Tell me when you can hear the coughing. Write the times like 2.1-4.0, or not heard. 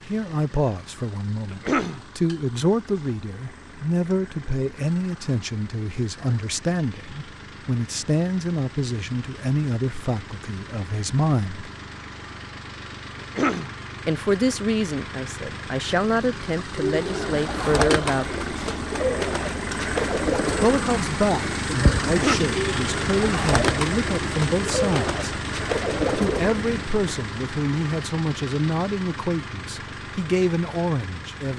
1.5-2.0, 13.2-13.8, 22.0-22.6.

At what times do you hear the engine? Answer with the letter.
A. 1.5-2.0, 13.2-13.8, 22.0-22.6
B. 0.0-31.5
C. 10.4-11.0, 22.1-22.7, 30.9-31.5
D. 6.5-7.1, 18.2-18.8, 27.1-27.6
B.